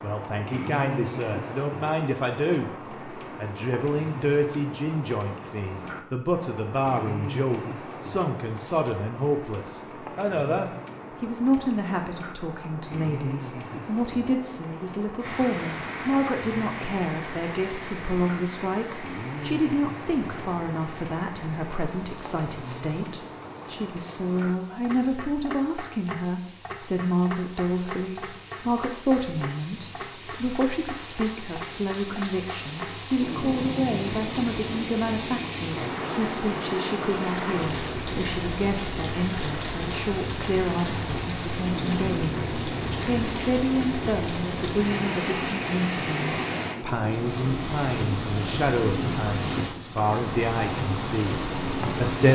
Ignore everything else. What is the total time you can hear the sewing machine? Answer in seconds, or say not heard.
not heard.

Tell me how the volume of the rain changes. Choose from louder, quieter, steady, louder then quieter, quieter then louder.
quieter then louder.